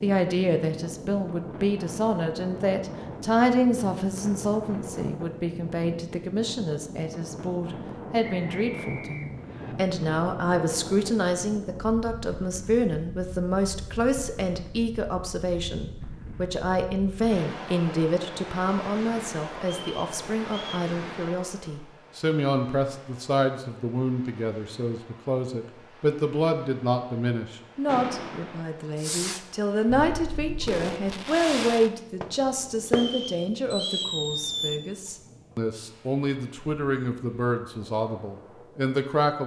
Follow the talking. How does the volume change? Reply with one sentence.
The loudness of the talking stays about the same.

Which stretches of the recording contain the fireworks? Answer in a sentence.
You can hear the fireworks from 27.9 to 34.8 s.